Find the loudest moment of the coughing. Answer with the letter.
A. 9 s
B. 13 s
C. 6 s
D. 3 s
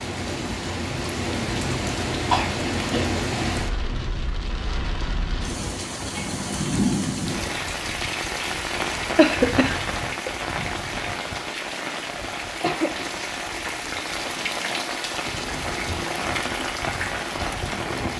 A.